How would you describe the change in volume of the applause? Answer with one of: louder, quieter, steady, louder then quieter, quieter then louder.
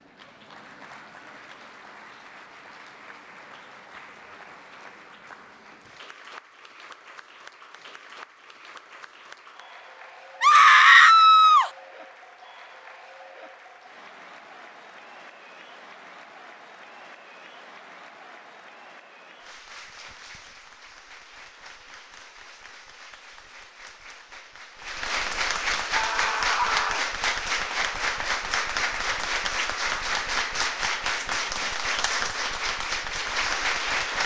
louder.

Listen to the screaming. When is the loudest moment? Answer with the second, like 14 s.
11 s.